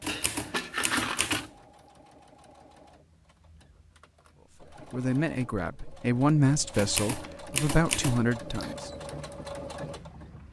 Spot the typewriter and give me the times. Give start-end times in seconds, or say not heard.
0.0-1.5, 6.7-8.8.